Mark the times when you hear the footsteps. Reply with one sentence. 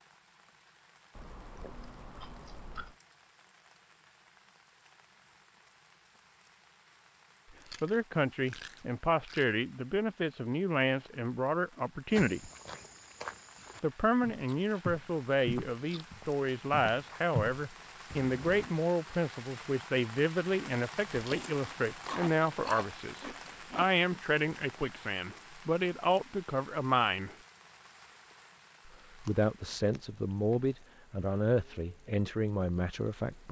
The footsteps can be heard from 12.1 to 18.7 s.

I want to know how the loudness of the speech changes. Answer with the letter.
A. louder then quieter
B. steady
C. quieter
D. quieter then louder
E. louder
B.